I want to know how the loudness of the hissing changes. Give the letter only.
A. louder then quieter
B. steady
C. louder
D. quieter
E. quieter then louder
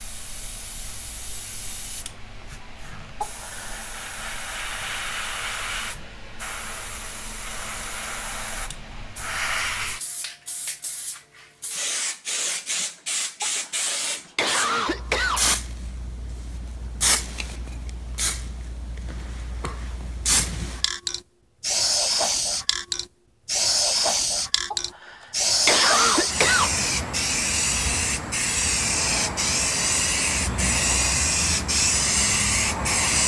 C.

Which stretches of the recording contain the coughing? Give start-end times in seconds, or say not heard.
3.2-3.9, 13.4-15.4, 24.7-26.7.